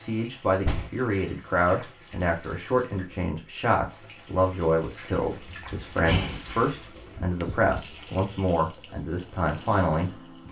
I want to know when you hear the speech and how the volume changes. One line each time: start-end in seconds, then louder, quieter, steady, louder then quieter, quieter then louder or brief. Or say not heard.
0.0-10.2 steady.